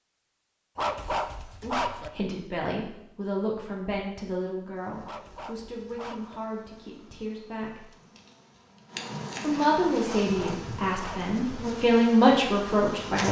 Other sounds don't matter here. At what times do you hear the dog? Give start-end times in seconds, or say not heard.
0.8-2.1, 5.0-6.4, 10.1-11.3.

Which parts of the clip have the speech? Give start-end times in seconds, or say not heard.
1.6-7.8, 9.4-13.2.